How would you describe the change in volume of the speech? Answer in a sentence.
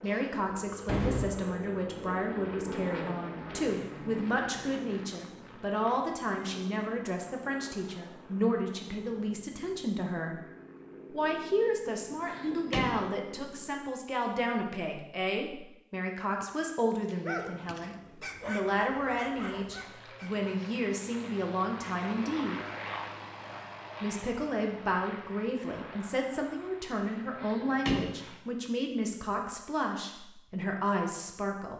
The loudness of the speech stays about the same.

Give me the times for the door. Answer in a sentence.
The door can be heard from 0.1 to 1.4 s, from 11.8 to 13.1 s and from 27.0 to 28.2 s.